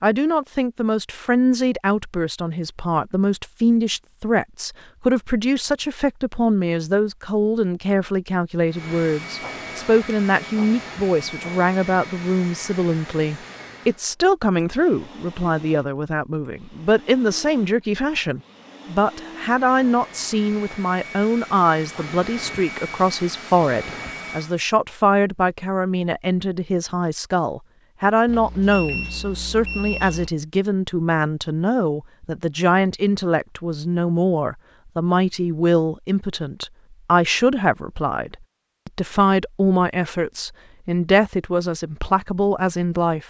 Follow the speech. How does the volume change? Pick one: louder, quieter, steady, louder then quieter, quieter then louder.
steady.